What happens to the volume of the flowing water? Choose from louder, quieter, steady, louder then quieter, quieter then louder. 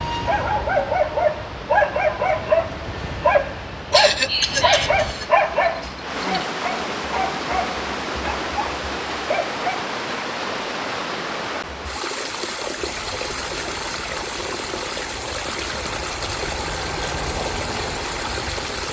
louder.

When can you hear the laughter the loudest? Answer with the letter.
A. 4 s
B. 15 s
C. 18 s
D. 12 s
A.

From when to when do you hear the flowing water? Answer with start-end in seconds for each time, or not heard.
0.0-18.8.